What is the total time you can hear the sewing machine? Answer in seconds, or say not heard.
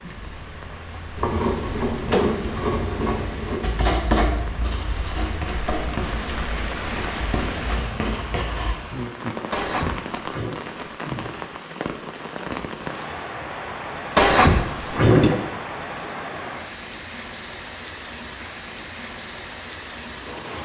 not heard.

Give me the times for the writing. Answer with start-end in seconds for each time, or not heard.
1.1-8.8.